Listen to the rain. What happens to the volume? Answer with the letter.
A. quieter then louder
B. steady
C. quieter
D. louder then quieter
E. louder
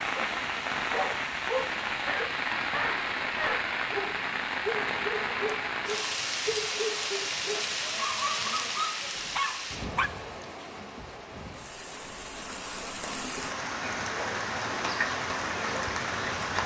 A.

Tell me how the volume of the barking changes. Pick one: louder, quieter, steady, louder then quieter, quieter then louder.
steady.